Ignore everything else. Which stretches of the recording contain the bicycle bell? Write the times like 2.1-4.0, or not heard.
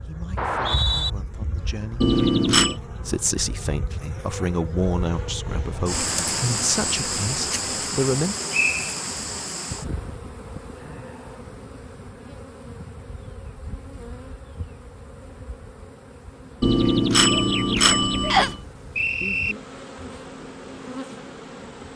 2.0-2.8, 16.6-18.6.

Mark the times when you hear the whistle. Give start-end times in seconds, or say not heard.
0.3-1.1, 8.5-8.9, 18.3-19.6.